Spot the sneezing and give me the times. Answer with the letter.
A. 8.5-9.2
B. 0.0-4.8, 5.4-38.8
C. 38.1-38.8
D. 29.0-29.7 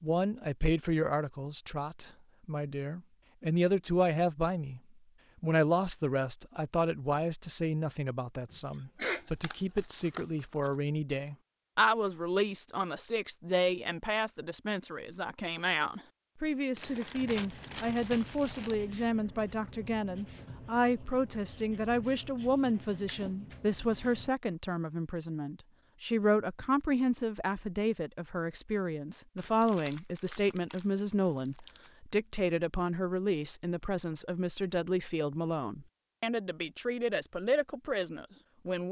A.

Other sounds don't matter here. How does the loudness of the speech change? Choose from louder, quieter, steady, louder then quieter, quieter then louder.
steady.